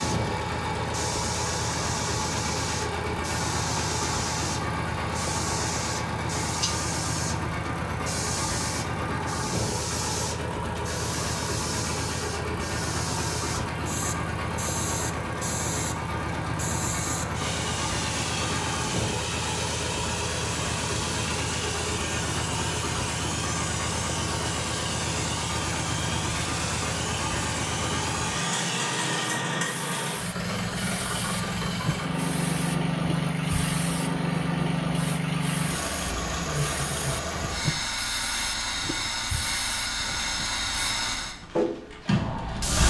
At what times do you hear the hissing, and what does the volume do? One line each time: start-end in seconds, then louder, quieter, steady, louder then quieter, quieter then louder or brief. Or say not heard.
0.0-42.8 steady.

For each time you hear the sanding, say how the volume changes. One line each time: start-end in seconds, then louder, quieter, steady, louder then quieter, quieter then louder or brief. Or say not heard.
not heard.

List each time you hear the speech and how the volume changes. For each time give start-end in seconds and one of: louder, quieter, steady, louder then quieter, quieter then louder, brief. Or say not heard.
not heard.